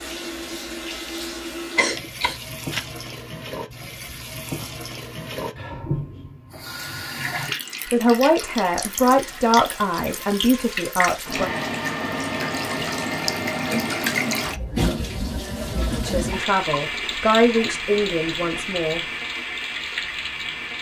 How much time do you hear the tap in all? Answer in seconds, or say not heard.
21 s.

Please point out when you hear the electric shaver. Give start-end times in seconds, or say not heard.
0.0-1.9.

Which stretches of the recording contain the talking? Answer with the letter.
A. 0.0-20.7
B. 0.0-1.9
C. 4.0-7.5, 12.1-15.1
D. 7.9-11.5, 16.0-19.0
D.